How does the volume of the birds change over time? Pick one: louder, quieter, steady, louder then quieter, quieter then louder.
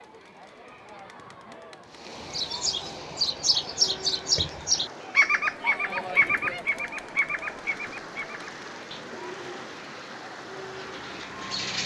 quieter.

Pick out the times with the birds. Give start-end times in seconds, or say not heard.
2.3-11.8.